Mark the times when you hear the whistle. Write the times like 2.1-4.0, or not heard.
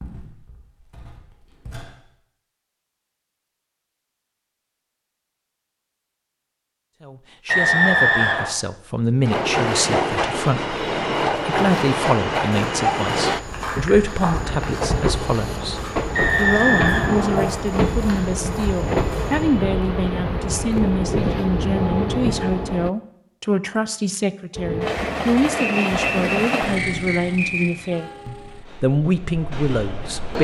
7.5-8.5, 16.1-17.6, 25.6-27.6.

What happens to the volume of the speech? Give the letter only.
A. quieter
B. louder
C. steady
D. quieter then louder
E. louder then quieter
C.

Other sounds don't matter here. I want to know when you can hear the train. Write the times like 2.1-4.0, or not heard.
9.2-22.9, 24.6-30.4.